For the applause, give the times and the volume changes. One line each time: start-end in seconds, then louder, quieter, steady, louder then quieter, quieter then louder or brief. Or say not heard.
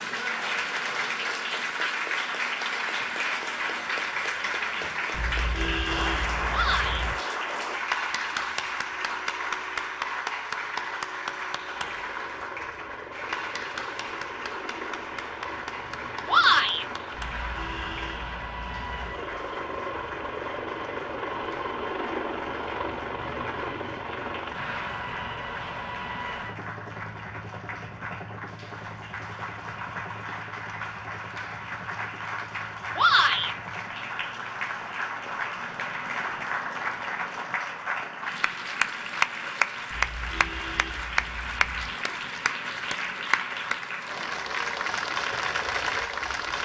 0.0-46.5 quieter then louder.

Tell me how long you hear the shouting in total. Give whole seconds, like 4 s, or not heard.
2 s.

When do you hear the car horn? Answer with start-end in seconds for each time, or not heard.
5.1-7.2, 17.2-19.1, 39.9-41.9.